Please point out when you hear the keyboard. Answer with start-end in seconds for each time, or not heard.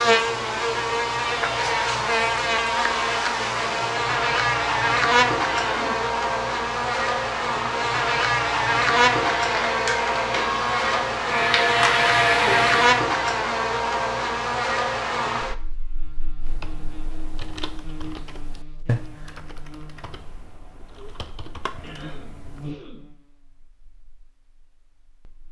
16.4-22.8.